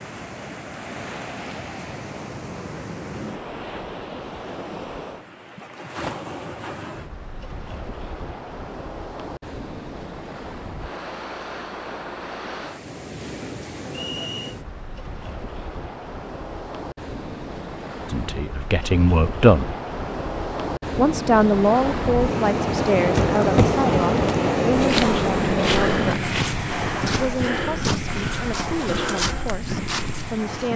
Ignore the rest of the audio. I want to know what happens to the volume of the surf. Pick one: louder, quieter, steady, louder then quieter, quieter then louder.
louder.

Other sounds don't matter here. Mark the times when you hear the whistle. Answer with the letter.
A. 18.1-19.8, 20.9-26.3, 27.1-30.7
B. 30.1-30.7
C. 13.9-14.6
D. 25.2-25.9
C.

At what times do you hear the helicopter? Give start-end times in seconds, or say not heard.
not heard.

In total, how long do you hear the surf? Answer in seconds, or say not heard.
31 s.